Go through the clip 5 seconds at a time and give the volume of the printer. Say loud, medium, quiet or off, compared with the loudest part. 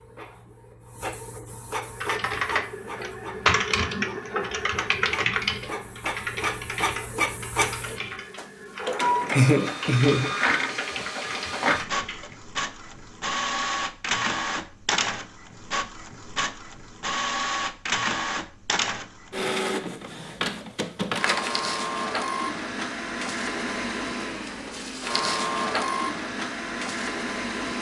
medium, loud, loud, loud, loud, loud.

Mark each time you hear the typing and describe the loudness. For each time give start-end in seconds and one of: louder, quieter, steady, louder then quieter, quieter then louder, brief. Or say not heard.
1.9-12.3 quieter.